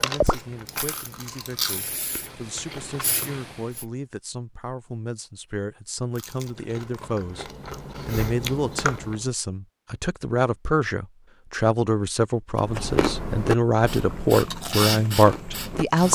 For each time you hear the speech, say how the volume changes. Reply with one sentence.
The speech can be heard from 0.0 to 16.0 s, getting louder.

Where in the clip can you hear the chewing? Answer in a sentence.
You can hear the chewing from 0.0 to 4.0 s, from 6.2 to 9.2 s and from 12.6 to 16.0 s.